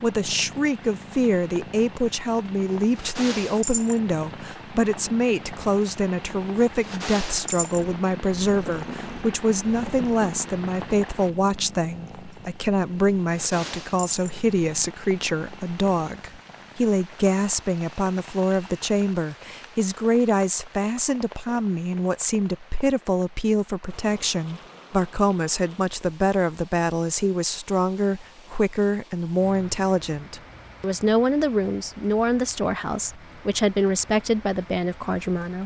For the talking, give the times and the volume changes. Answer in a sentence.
You can hear the talking from 0.0 to 35.6 s, at a steady volume.